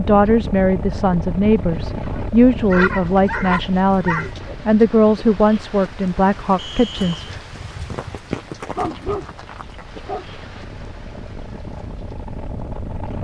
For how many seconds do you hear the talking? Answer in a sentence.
You can hear the talking for 7 seconds altogether.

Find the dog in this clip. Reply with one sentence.
You can hear the dog from 1.8 to 4.3 s and from 8.8 to 10.2 s.